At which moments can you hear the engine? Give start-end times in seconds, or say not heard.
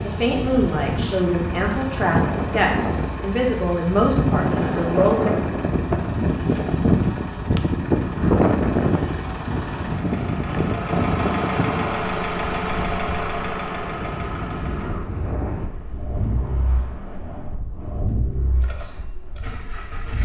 0.0-20.1.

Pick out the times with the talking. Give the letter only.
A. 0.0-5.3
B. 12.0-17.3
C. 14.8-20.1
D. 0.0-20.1
A.